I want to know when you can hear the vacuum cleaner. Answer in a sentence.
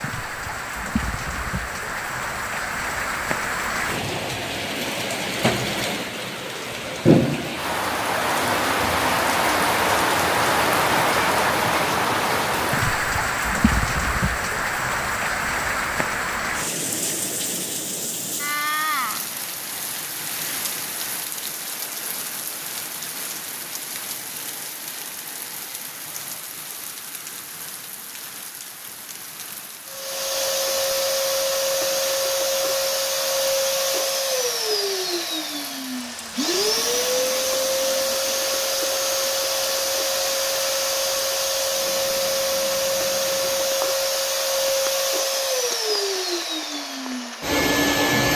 You can hear the vacuum cleaner from 29.9 to 48.3 s.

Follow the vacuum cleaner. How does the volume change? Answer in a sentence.
The volume of the vacuum cleaner stays about the same.